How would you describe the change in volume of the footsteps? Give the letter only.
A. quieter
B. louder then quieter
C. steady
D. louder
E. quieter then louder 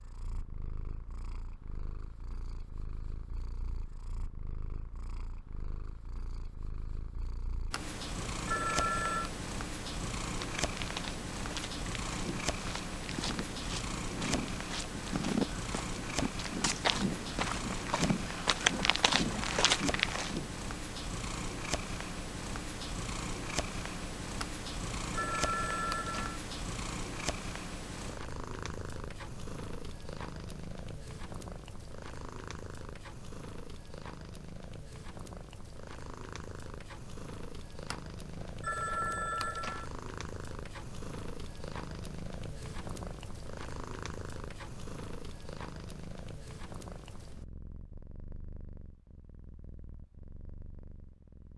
D.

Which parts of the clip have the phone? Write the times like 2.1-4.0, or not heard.
7.7-9.3, 24.4-26.4, 37.9-39.9.